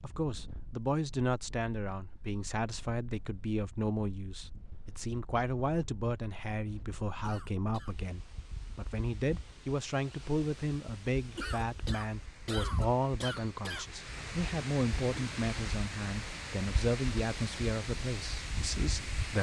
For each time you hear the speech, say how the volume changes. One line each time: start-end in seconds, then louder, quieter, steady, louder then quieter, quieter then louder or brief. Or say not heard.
0.0-19.3 steady.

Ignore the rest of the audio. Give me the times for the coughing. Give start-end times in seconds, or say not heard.
7.2-8.0, 11.3-13.8.